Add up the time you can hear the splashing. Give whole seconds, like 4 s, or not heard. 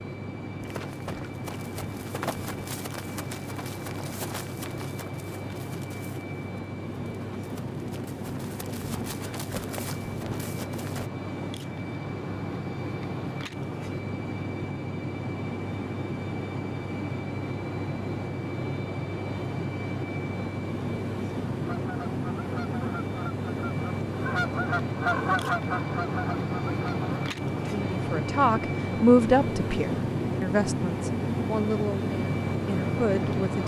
not heard.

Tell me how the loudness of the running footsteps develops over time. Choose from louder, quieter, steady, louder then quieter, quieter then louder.
quieter then louder.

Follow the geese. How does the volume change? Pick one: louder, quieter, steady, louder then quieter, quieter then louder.
louder then quieter.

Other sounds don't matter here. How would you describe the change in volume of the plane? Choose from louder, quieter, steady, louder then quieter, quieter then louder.
louder.